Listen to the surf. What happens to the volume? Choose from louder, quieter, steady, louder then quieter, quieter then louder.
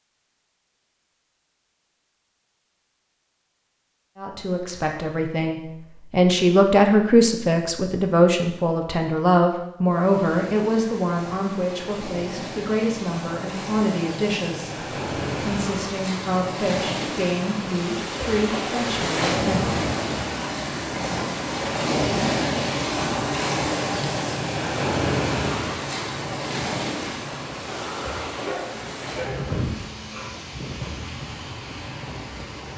louder then quieter.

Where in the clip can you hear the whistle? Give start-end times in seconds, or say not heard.
not heard.